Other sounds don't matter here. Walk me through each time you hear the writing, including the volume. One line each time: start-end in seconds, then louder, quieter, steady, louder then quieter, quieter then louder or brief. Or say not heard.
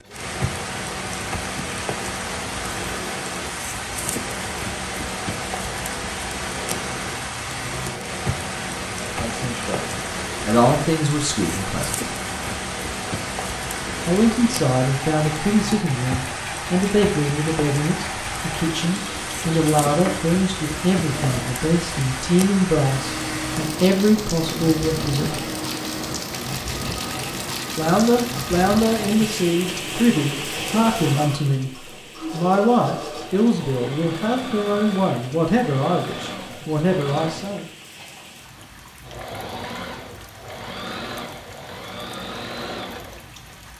not heard.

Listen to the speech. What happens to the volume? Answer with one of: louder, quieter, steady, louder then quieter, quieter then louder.
steady.